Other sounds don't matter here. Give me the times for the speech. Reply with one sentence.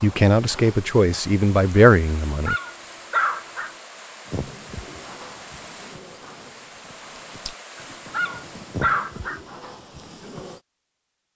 You can hear the speech from 0.0 to 2.5 s.